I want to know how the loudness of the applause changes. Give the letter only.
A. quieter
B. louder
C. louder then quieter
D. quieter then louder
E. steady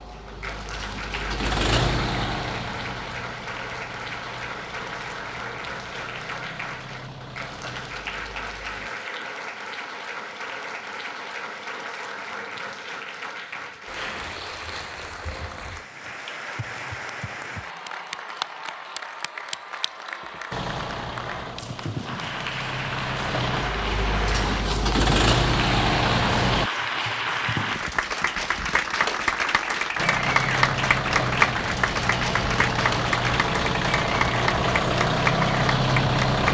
B.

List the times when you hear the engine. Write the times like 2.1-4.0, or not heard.
0.0-8.9, 20.5-26.7, 29.9-36.4.